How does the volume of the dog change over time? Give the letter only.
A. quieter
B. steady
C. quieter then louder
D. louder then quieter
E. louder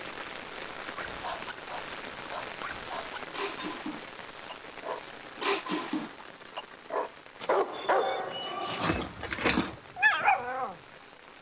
E.